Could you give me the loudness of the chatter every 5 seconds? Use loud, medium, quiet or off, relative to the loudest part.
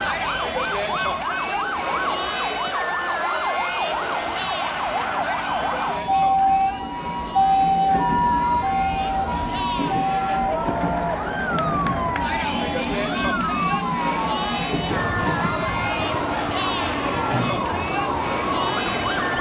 loud, medium, loud, loud.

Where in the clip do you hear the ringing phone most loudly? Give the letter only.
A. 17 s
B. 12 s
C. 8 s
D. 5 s
D.